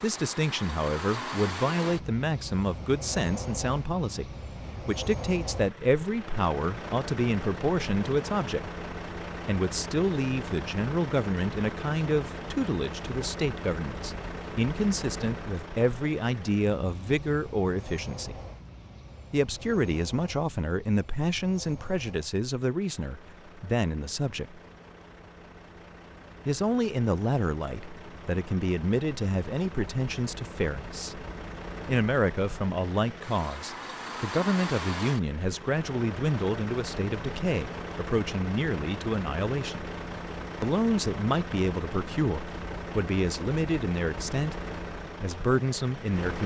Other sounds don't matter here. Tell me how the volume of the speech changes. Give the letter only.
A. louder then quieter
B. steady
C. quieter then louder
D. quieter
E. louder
B.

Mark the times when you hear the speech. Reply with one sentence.
You can hear the speech from 0.0 to 8.8 s, from 9.4 to 18.4 s, from 19.3 to 24.6 s, from 26.4 to 31.2 s, from 31.9 to 39.8 s and from 40.6 to 46.4 s.